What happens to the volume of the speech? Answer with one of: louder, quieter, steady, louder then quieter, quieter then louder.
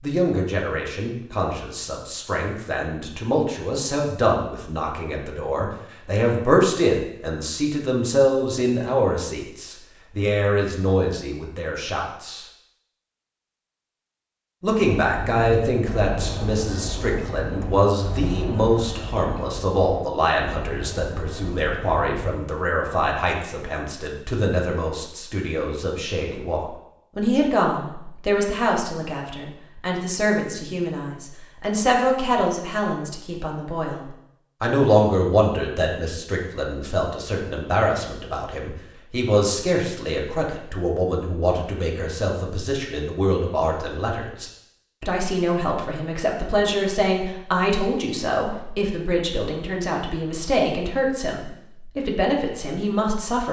steady.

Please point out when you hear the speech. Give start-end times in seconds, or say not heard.
0.0-12.4, 14.6-53.4.